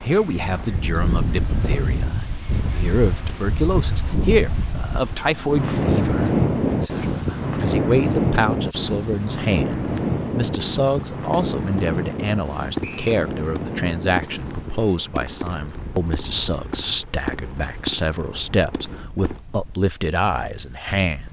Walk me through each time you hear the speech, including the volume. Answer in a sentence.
The speech can be heard from 0.0 to 21.2 s, at a steady volume.